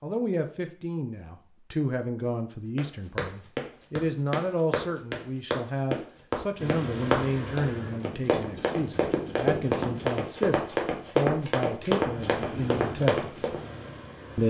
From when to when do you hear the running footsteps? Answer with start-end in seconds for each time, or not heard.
2.8-13.6.